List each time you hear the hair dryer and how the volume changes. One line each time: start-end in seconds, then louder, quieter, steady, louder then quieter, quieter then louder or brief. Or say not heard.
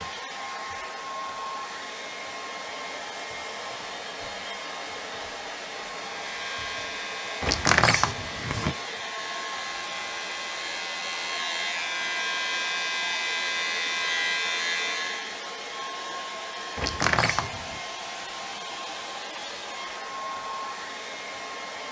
0.0-21.8 steady.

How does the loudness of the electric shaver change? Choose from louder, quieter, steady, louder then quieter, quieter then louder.
louder.